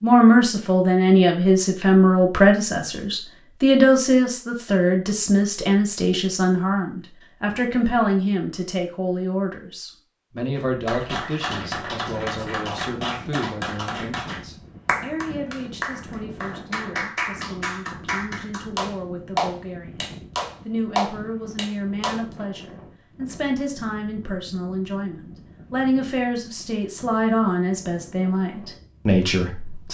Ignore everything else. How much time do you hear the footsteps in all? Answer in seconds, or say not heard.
not heard.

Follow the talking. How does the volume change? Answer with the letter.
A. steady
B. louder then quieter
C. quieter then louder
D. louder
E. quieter
C.